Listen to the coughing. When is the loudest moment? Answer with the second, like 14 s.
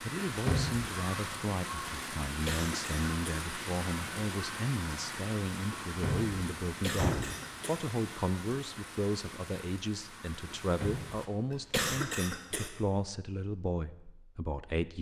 12 s.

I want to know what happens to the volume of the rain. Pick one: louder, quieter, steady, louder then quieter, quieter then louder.
quieter.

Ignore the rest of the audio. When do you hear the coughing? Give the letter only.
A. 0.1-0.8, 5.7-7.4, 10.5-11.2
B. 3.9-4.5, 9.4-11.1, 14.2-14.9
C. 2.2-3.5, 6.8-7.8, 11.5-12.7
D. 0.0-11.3
C.